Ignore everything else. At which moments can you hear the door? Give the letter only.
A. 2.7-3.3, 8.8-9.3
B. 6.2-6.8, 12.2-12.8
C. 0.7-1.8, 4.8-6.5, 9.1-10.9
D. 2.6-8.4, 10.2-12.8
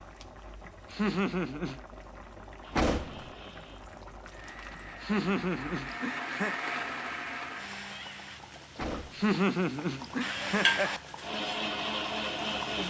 A.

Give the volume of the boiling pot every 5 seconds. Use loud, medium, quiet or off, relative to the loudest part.
quiet, quiet, loud.